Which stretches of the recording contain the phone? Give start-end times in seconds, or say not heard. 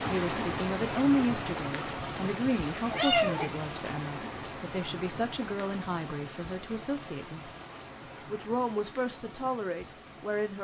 not heard.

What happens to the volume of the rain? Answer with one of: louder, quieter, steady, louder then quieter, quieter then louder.
quieter.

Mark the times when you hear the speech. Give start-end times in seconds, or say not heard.
0.1-7.5, 8.2-10.5.